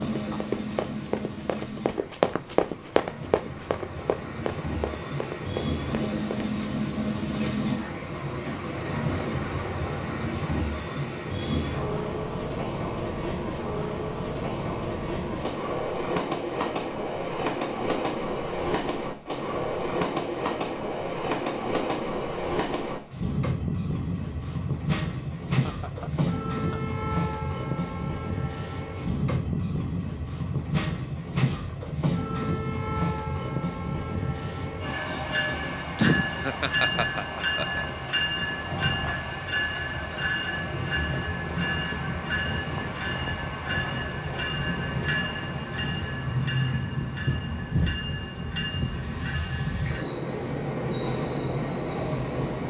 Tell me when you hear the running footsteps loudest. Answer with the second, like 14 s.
2 s.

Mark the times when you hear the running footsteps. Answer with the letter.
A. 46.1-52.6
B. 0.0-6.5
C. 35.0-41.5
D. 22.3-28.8
B.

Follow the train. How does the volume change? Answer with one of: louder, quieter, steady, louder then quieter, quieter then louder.
steady.